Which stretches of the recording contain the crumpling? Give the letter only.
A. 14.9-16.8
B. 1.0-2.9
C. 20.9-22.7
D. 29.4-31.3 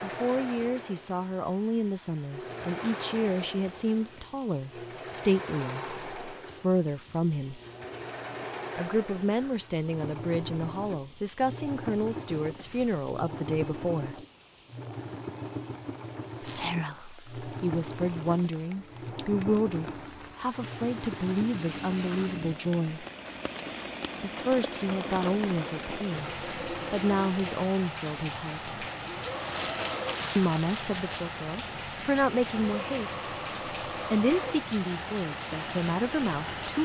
D.